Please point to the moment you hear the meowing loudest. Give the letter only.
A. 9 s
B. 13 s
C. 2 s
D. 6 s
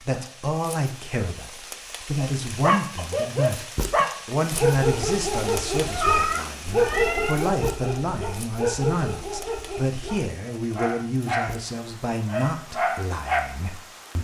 D.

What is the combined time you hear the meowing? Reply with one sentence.
The meowing can be heard for 2 seconds in total.